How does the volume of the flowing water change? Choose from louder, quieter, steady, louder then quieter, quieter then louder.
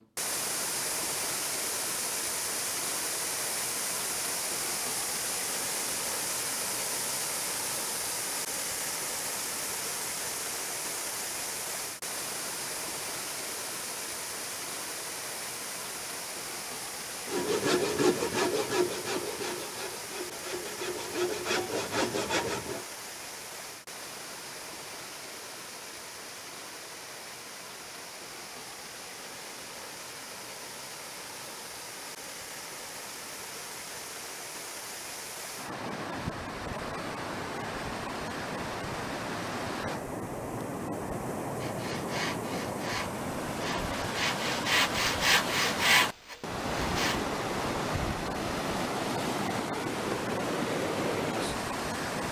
quieter then louder.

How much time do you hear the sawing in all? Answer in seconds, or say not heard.
11 s.